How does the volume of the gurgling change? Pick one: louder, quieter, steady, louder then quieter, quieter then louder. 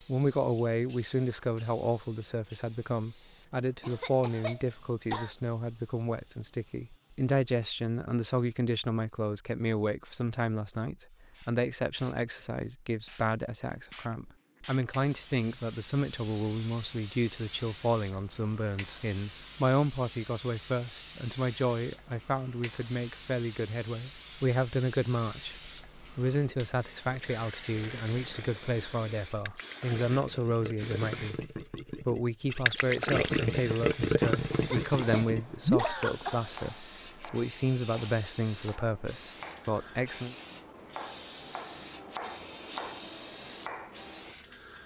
louder.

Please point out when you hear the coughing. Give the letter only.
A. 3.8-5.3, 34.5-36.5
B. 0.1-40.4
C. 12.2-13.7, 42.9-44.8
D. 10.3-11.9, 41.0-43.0
A.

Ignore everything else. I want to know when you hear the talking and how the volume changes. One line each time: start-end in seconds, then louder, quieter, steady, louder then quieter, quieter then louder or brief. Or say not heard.
0.1-40.4 steady.